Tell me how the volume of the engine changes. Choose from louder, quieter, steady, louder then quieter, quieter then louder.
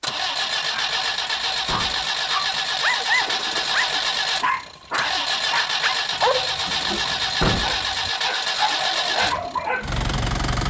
steady.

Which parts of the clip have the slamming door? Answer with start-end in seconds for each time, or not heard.
1.6-2.1, 7.4-7.8.